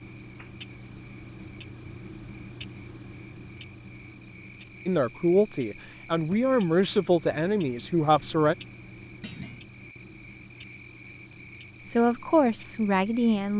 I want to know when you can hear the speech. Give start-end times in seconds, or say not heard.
4.8-8.6, 11.8-13.5.